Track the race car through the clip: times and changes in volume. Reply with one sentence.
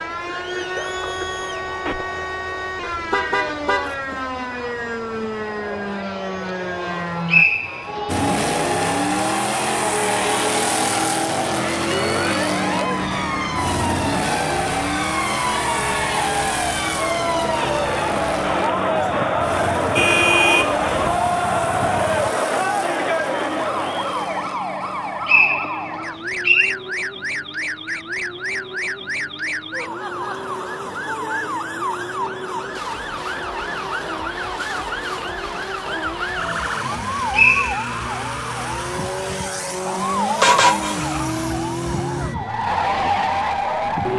You can hear the race car from 8.1 to 44.1 s, getting quieter then louder.